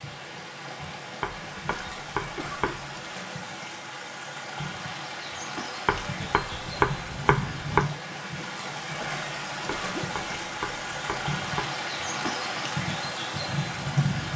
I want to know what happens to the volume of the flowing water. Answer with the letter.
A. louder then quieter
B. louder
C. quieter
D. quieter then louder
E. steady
B.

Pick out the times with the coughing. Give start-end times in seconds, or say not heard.
1.6-2.8, 8.9-10.4.